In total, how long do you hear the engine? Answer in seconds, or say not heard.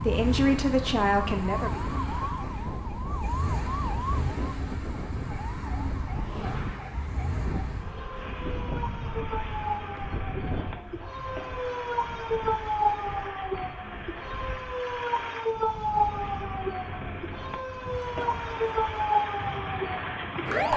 21 s.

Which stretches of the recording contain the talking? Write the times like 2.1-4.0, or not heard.
0.0-1.9.